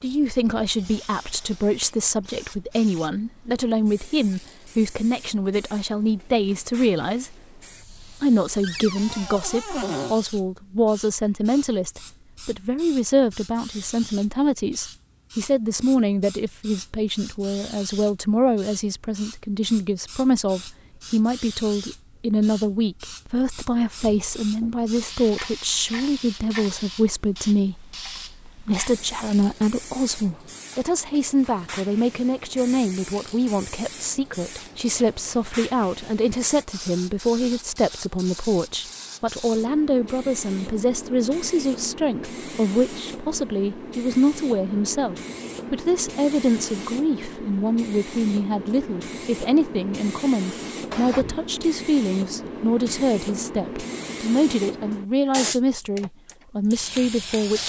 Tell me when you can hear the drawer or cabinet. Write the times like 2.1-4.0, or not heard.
8.6-10.2, 24.0-24.8, 50.9-51.5.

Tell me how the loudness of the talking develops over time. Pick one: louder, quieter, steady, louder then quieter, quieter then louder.
steady.